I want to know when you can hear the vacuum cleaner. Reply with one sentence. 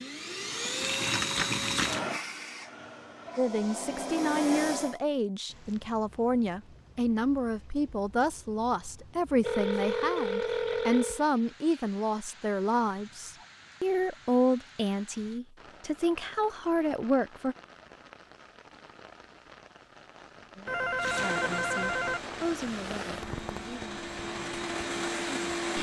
The vacuum cleaner can be heard from 0.0 to 5.0 s and from 20.9 to 25.7 s.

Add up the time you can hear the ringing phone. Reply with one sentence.
The ringing phone can be heard for 5 seconds in total.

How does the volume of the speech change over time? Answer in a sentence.
The volume of the speech goes down.